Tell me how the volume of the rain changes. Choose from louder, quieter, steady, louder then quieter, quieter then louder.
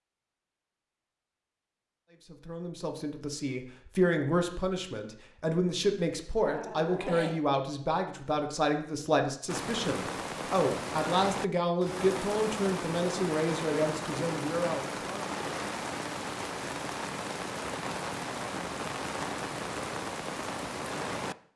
steady.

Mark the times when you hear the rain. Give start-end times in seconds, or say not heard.
9.4-21.4.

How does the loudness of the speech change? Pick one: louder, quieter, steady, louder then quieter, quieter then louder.
steady.